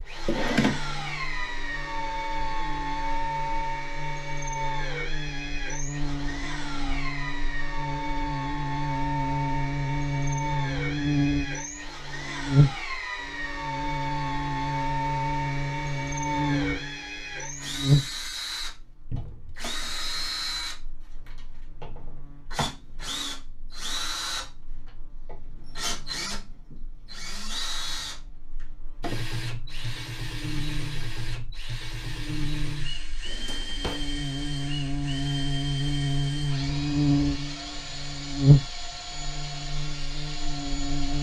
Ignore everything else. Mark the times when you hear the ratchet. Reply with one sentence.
The ratchet can't be heard in this clip.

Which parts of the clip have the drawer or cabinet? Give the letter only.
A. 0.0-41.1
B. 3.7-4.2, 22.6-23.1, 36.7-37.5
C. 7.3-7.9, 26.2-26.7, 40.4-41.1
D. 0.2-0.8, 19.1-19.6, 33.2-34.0
D.